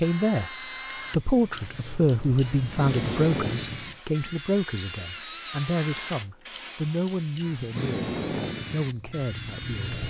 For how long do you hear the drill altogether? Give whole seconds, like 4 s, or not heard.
10 s.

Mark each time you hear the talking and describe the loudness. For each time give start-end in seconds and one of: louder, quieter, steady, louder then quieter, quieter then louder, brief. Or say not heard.
0.0-0.5 brief
1.1-10.0 quieter.